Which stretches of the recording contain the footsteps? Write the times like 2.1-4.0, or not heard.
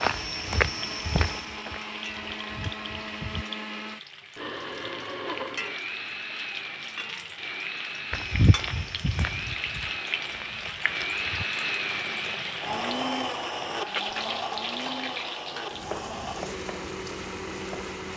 0.0-3.5, 8.1-11.4.